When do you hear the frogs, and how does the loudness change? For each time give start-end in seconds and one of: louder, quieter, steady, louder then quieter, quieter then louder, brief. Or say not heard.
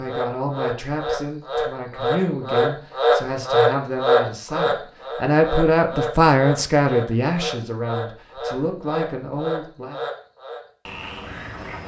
0.0-11.8 louder then quieter.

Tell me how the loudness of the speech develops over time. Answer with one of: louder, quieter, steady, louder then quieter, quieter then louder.
louder then quieter.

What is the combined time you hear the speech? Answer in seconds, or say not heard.
10 s.